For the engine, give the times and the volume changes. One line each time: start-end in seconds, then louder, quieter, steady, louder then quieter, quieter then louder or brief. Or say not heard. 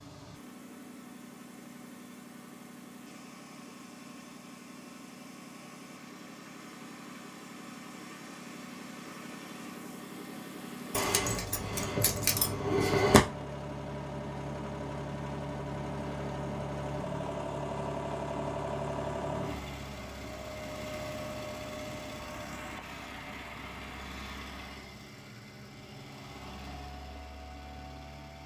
0.0-28.4 louder then quieter.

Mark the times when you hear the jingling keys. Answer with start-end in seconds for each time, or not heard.
10.9-13.2.